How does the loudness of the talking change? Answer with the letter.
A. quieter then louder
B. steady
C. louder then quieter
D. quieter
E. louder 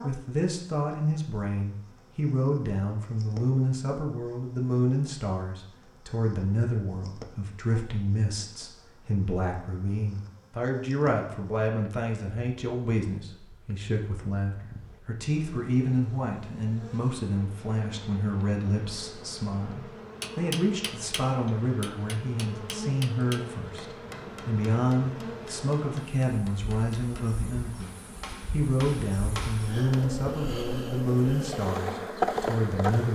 B.